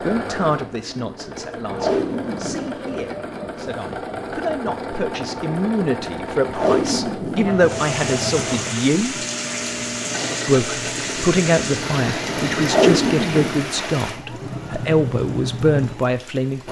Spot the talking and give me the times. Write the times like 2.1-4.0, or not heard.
0.0-9.2, 10.4-16.6.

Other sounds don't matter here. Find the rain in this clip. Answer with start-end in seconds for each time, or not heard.
7.6-16.6.